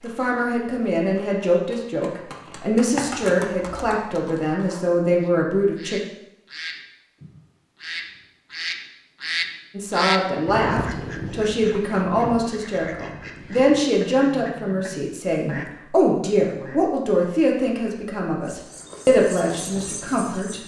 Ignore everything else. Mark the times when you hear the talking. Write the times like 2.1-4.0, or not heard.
0.0-6.0, 9.8-20.6.